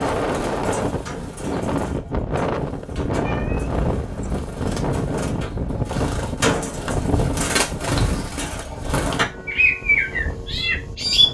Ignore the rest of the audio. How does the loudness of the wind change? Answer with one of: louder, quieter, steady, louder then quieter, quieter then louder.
quieter.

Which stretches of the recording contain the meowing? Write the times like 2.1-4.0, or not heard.
3.2-4.5.